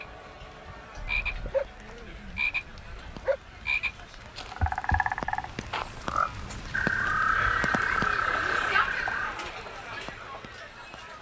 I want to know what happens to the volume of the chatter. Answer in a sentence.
The volume of the chatter goes up.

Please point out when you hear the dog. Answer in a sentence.
You can hear the dog from 0.9 to 3.4 s.